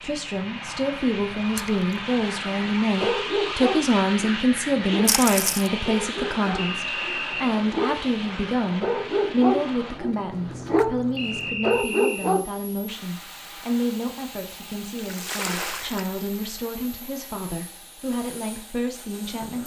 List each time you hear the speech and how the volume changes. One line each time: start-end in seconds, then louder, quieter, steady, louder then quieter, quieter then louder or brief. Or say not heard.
0.0-19.6 quieter.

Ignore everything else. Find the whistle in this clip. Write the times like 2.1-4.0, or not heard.
6.5-7.5, 11.2-12.3.